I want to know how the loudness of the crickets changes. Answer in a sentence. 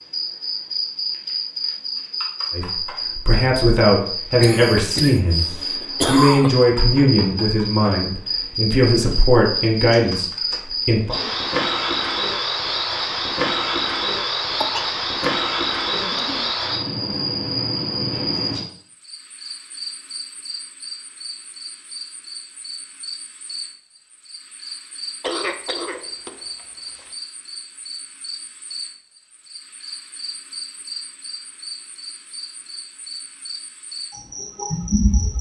The loudness of the crickets goes down.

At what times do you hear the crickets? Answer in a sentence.
You can hear the crickets from 0.0 to 35.3 s.